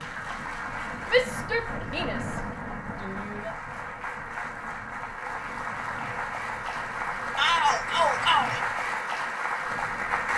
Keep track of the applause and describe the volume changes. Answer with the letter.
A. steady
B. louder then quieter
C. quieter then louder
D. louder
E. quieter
D.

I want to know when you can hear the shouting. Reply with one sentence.
The shouting can be heard from 1.1 to 3.5 s and from 7.3 to 8.6 s.